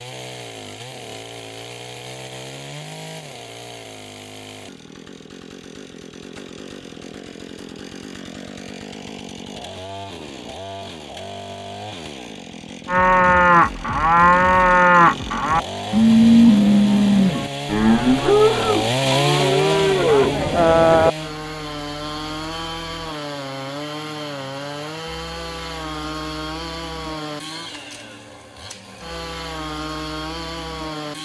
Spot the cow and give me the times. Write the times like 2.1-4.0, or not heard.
12.8-21.1.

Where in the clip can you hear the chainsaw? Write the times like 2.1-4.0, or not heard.
0.0-31.2.